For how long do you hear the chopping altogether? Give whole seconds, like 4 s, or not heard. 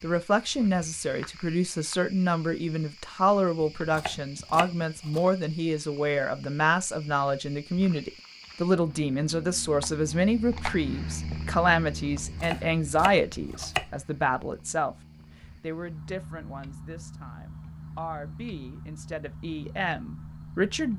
3 s.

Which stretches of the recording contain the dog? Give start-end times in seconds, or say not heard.
not heard.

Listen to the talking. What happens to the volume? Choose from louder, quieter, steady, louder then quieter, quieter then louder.
quieter.